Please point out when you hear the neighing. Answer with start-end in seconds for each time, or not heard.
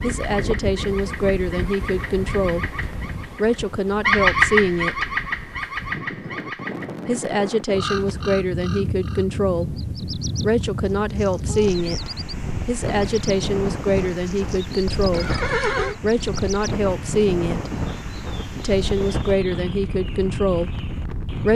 15.1-15.9.